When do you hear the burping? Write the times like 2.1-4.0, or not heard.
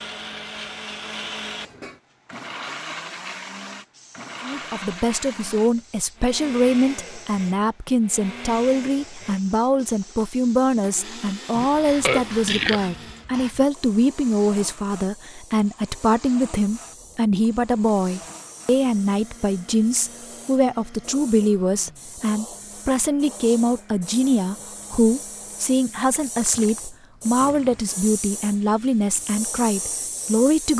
11.6-12.8.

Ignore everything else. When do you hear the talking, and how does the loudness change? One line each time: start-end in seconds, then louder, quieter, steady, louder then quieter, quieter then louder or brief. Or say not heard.
4.4-30.7 steady.